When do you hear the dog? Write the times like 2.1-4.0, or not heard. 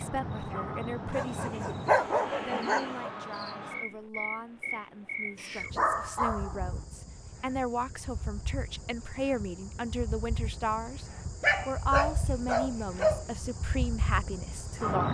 1.1-3.1, 5.3-6.8, 11.4-13.2.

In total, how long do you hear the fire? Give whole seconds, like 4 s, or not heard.
not heard.